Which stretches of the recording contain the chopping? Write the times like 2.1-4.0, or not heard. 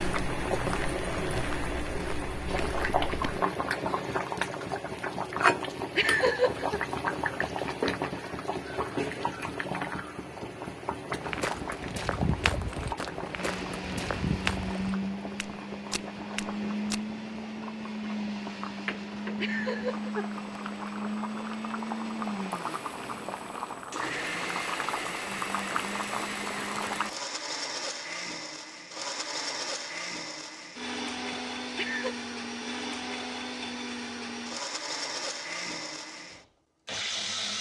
not heard.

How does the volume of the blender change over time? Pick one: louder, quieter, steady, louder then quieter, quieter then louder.
steady.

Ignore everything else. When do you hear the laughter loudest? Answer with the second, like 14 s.
6 s.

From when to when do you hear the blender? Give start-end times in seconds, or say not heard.
13.3-37.5.